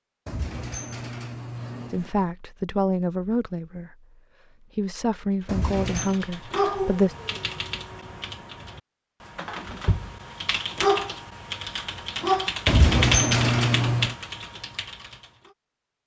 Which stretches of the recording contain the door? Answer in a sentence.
You can hear the door from 0.2 to 2.1 s, from 5.5 to 6.2 s and from 12.7 to 14.2 s.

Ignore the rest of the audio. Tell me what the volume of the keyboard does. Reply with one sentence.
The loudness of the keyboard goes down, then up.